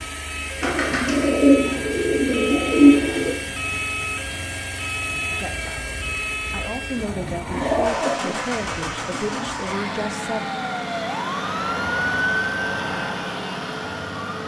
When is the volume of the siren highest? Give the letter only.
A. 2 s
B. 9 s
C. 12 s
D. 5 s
C.